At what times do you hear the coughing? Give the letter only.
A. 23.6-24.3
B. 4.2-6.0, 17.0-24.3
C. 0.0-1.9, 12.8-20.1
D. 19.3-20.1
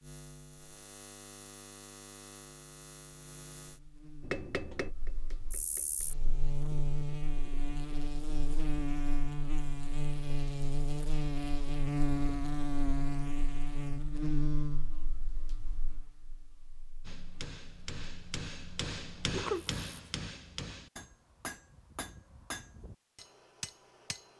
D.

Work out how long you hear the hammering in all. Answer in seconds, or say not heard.
9 s.